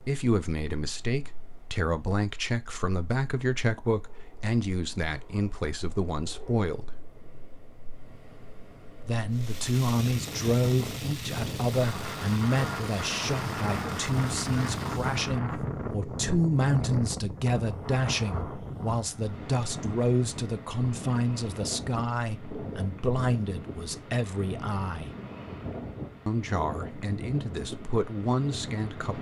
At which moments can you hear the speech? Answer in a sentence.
The speech can be heard from 0.1 to 7.0 s, from 9.0 to 25.1 s and from 26.2 to 29.1 s.